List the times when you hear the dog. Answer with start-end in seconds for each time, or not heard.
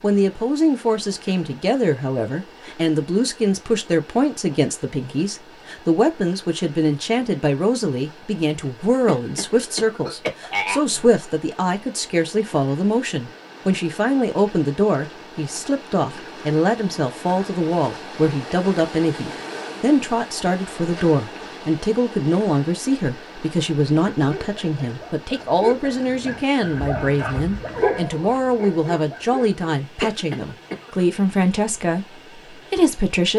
24.1-29.6.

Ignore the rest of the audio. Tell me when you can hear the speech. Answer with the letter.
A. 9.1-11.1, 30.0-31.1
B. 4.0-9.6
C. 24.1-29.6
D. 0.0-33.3
D.